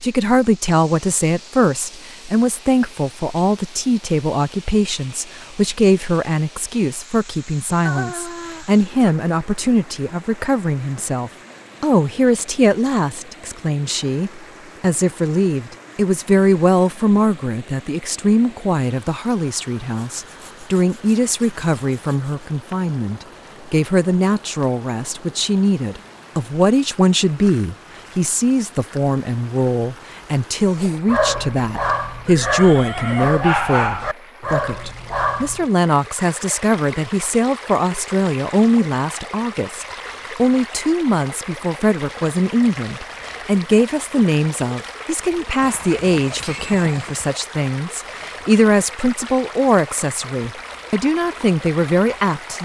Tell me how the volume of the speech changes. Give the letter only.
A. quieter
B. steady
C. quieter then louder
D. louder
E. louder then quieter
B.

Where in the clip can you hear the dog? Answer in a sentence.
The dog can be heard from 30.7 to 35.6 s.